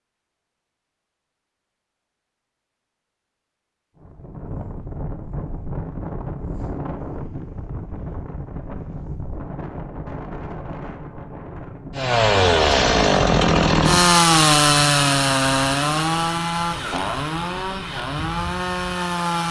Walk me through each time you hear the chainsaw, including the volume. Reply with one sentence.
The chainsaw can be heard from 11.9 to 19.4 s, getting quieter.